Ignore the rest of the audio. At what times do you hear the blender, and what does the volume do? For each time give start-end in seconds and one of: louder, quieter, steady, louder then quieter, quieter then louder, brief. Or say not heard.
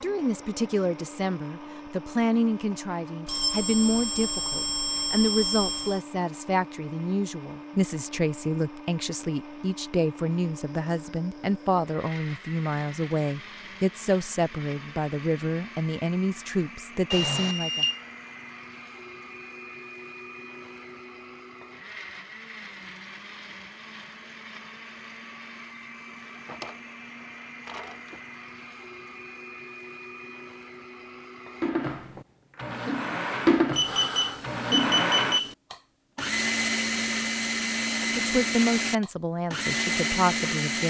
0.0-40.8 louder.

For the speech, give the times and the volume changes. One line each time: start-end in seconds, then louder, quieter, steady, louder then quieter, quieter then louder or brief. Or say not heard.
0.0-17.9 steady
38.1-40.8 brief.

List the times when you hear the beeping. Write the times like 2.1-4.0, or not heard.
3.2-6.0, 17.1-18.0, 33.7-35.5.